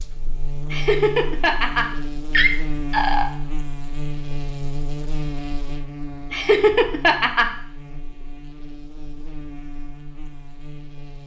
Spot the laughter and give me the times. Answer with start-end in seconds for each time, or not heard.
0.7-3.3, 6.3-7.5.